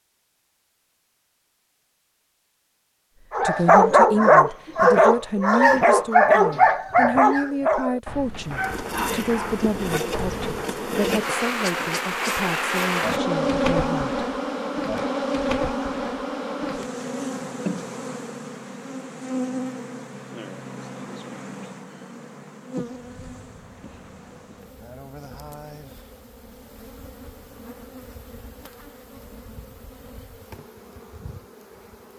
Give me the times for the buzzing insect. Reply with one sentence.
The buzzing insect can be heard from 8.3 to 32.1 s.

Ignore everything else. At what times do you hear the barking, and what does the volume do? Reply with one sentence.
You can hear the barking from 3.3 to 10.7 s, getting quieter.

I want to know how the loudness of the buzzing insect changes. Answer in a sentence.
The loudness of the buzzing insect goes down.